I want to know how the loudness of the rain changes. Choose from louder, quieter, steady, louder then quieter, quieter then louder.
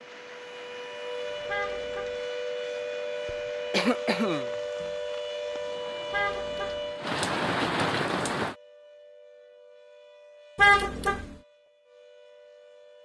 louder.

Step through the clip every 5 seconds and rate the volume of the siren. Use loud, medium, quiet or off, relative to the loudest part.
loud, loud, quiet.